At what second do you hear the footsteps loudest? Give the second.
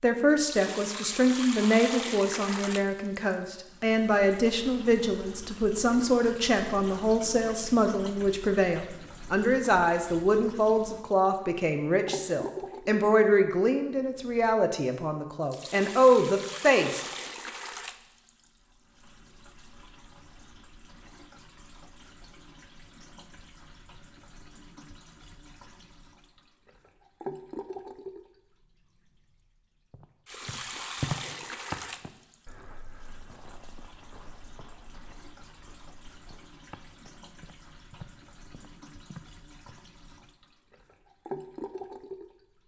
31 s.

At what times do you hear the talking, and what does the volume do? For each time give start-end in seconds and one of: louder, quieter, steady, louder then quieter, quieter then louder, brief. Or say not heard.
0.0-17.1 steady.